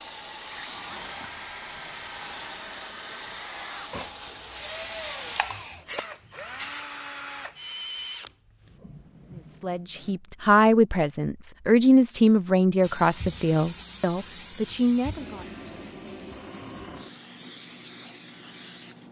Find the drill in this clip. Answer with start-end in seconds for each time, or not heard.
0.0-10.2.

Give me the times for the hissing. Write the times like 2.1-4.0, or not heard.
0.0-6.8, 12.8-19.0.